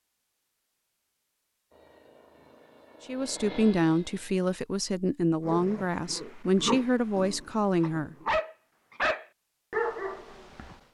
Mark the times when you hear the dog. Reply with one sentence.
The dog can be heard from 5.4 to 10.8 s.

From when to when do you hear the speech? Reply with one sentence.
You can hear the speech from 3.0 to 8.2 s.